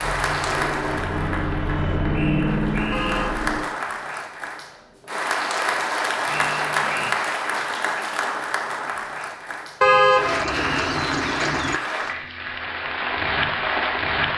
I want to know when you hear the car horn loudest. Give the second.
10 s.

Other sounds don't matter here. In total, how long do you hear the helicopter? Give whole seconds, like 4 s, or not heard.
4 s.